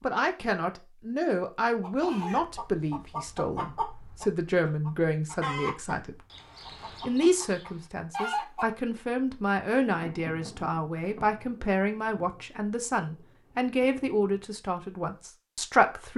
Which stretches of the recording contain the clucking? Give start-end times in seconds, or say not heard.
1.8-8.8.